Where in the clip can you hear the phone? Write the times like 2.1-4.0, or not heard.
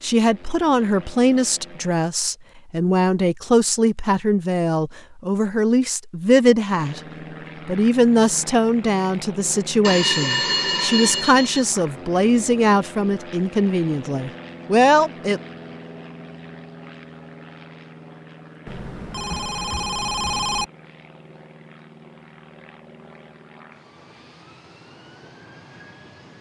9.8-11.7, 18.6-20.6.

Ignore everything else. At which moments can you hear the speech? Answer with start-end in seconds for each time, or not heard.
0.0-7.0, 7.7-15.4.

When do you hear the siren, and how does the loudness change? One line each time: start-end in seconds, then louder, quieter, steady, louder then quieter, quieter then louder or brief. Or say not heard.
not heard.